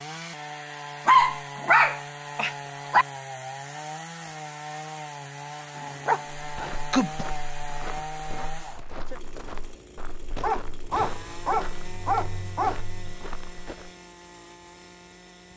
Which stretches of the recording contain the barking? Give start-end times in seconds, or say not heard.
1.1-3.0, 5.8-7.2, 10.4-13.2.